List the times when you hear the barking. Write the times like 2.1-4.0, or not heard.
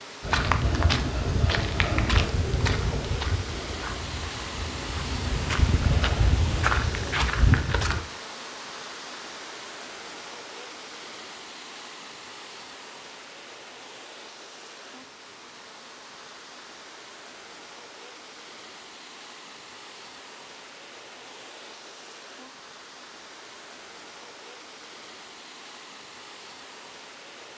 not heard.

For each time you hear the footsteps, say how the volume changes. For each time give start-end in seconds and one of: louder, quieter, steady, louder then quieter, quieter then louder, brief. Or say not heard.
0.2-8.0 quieter then louder.